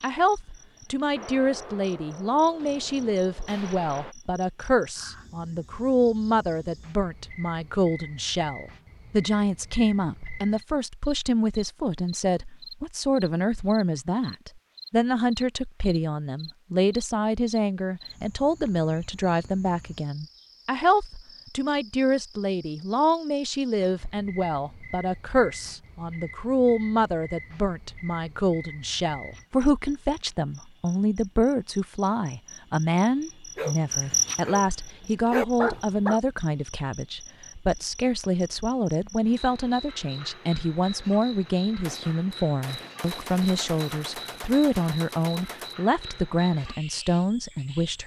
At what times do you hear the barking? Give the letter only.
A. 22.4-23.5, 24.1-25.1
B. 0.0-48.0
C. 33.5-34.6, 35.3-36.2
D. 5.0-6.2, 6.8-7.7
C.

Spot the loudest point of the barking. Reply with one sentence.
The loudest moment of the barking is at 36 seconds.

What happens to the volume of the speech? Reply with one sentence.
The volume of the speech stays about the same.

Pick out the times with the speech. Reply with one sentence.
The speech can be heard from 0.0 to 48.0 s.